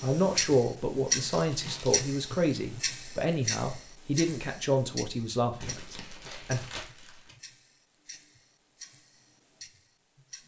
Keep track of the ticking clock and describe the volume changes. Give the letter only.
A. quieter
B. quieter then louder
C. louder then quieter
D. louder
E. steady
B.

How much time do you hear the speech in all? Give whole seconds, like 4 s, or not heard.
7 s.